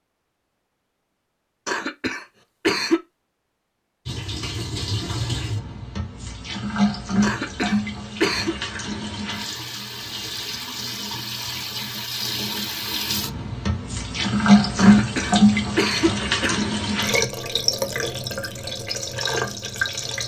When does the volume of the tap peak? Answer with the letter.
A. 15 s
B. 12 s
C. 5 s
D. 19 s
A.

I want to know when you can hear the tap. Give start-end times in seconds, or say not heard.
4.0-20.2.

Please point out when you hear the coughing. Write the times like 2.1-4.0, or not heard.
1.6-3.0, 7.2-8.6, 14.8-16.6.